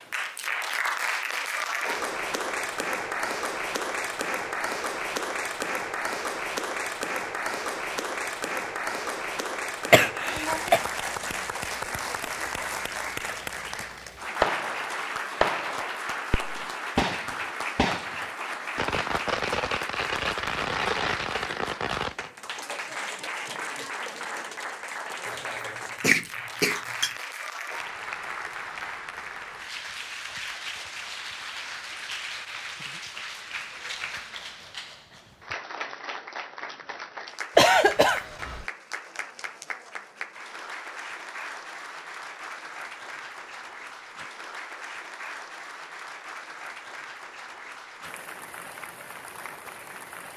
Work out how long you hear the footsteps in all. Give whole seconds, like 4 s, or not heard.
not heard.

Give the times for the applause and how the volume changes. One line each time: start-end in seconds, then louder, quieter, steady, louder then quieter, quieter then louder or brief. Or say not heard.
0.0-50.3 quieter.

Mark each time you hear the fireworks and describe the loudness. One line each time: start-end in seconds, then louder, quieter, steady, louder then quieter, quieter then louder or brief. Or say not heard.
14.4-22.3 steady.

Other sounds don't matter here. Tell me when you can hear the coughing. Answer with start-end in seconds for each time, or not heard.
9.9-10.8, 25.5-27.1, 37.5-38.6.